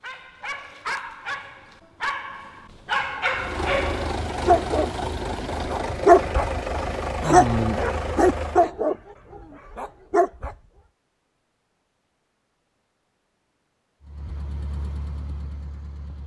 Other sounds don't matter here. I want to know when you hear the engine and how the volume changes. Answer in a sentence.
The engine can be heard from 3.3 to 8.7 s, at a steady volume; and briefly from 14.0 to 16.2 s.